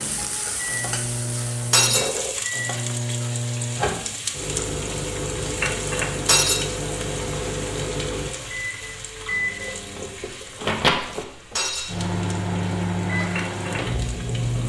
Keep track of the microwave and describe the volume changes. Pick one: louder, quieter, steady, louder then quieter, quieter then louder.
steady.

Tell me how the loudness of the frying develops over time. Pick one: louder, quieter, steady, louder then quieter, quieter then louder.
quieter.